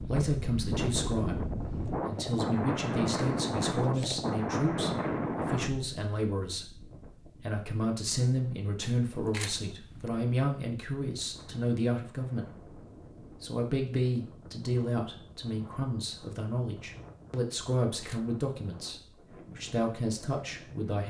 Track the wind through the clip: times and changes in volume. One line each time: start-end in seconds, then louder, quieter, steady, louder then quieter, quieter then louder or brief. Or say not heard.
0.0-21.0 quieter.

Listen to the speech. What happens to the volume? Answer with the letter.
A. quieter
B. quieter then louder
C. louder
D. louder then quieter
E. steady
E.